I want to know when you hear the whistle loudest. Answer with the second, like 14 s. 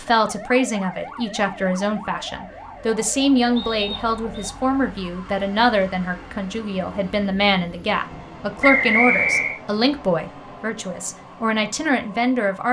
9 s.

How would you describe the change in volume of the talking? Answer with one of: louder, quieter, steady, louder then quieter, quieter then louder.
steady.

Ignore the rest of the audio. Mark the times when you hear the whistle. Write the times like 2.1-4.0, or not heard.
3.5-4.5, 8.6-9.6.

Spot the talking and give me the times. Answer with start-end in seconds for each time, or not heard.
0.0-12.6.